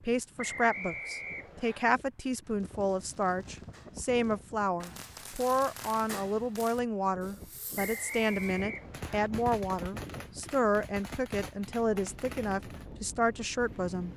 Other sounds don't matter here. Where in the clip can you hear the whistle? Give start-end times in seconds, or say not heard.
0.3-1.9, 7.8-9.3.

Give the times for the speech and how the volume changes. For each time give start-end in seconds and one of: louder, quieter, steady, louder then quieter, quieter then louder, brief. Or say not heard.
0.0-14.1 steady.